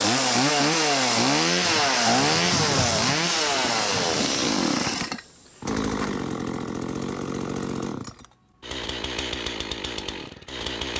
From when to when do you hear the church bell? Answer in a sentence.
The church bell can't be heard in this clip.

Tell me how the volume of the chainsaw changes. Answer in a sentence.
The loudness of the chainsaw goes down.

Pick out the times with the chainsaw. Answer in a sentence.
You can hear the chainsaw from 0.0 to 10.9 s.